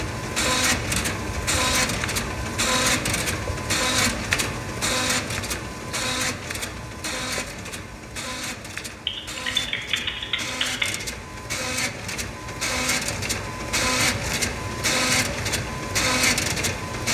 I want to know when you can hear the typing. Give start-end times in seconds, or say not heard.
8.9-10.8.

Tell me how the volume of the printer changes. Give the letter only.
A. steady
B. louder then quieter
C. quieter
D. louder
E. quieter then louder
E.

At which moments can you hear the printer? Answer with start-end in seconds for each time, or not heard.
0.0-17.0.